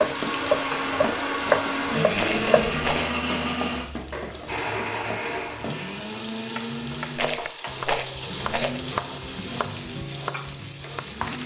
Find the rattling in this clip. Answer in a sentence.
You can hear the rattling from 2.1 to 3.0 s and from 7.2 to 8.8 s.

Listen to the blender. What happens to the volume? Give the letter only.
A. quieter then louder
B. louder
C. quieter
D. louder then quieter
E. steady
C.